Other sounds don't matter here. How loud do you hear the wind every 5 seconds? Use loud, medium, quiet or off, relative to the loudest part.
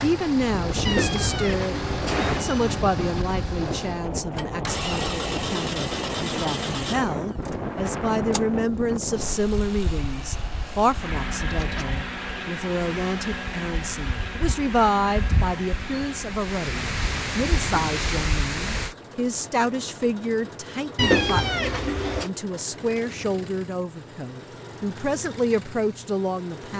loud, loud, quiet, loud, off, off.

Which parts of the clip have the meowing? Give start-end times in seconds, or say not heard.
0.8-2.8, 9.8-11.8, 20.9-22.3.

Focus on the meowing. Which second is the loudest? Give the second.
21 s.